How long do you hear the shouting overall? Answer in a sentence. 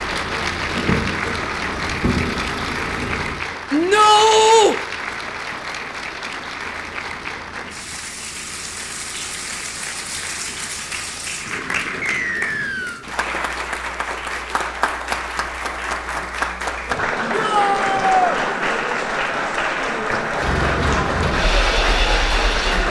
The shouting can be heard for 2 seconds in total.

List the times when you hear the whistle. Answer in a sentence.
The whistle can be heard from 12.0 to 13.1 s.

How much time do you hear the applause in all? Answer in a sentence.
You can hear the applause for 23 seconds altogether.